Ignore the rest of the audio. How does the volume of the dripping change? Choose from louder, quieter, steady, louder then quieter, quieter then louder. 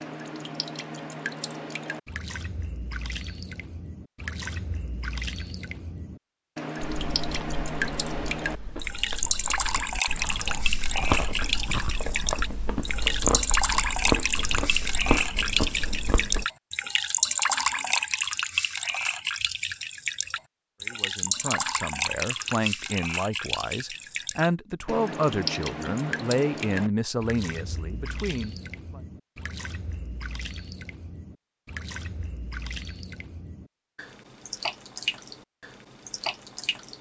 louder then quieter.